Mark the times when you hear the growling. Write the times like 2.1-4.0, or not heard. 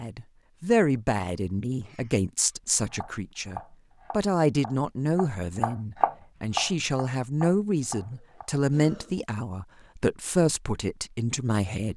not heard.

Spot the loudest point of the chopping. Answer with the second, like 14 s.
6 s.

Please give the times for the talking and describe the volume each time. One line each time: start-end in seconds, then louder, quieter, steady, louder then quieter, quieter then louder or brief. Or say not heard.
0.0-11.9 steady.